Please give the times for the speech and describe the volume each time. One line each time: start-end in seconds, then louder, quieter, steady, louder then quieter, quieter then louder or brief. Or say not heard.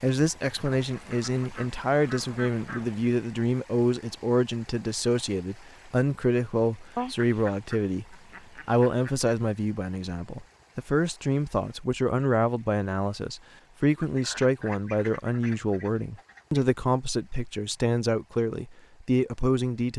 0.0-19.9 steady.